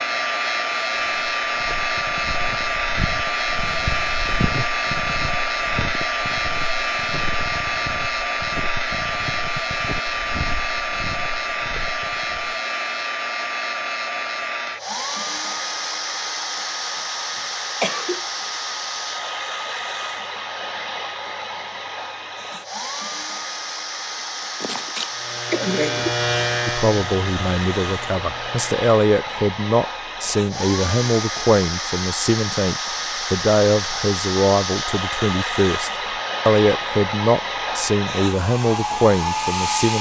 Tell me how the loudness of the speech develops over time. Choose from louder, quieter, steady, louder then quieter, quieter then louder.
steady.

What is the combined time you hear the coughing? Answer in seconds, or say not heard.
3 s.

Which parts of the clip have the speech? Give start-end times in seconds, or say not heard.
26.6-39.9.